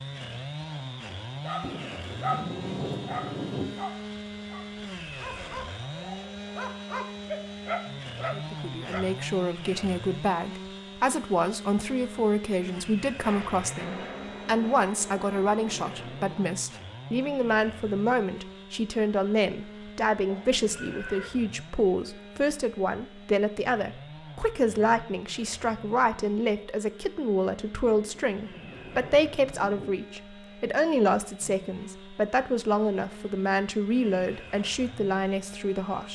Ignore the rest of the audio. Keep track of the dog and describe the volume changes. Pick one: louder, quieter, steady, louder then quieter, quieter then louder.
quieter then louder.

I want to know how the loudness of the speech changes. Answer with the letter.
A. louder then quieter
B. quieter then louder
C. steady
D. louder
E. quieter
C.